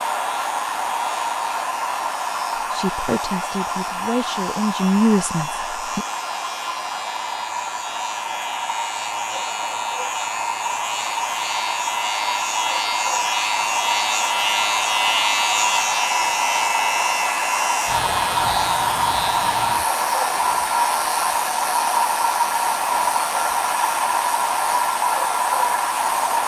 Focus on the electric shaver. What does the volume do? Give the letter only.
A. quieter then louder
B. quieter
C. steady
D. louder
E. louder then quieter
E.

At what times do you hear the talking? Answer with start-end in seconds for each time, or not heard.
2.5-6.0.